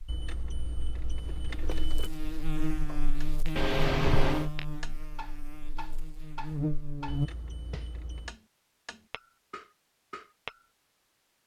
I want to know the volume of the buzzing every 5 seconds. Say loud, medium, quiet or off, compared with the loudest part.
loud, loud, off.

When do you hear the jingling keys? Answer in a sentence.
The jingling keys can be heard from 0.1 to 2.1 s and from 7.0 to 8.4 s.